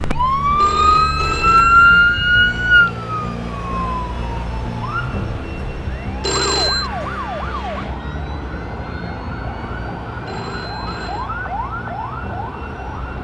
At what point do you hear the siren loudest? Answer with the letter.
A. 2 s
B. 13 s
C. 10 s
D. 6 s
A.